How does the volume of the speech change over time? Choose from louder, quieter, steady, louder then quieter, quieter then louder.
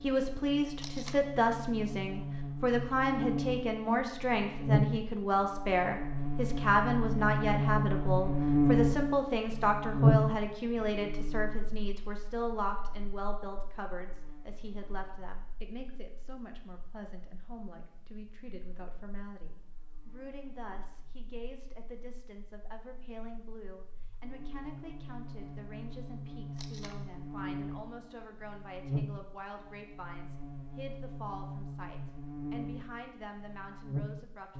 quieter.